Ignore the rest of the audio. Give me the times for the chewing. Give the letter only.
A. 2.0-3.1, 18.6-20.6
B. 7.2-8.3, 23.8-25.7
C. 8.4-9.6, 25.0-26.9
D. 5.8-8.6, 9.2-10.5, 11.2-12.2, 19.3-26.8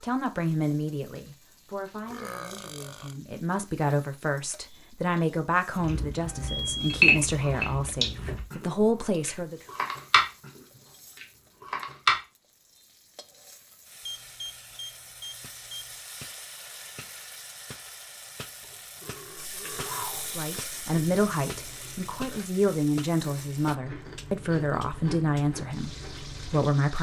D.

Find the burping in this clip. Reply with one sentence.
You can hear the burping from 2.0 to 3.1 s and from 18.6 to 20.6 s.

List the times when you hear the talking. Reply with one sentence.
The talking can be heard from 0.0 to 9.6 s and from 20.2 to 26.9 s.